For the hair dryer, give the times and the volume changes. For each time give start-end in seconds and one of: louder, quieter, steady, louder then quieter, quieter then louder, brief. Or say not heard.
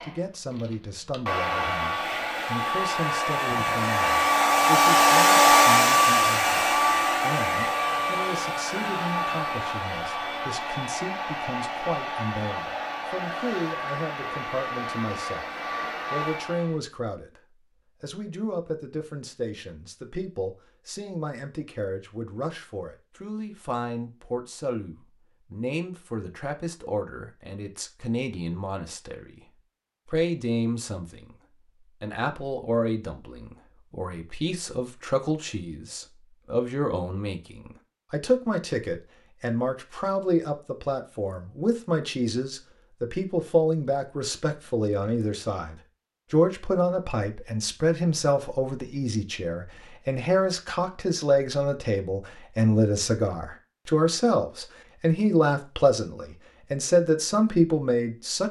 0.0-16.8 louder then quieter.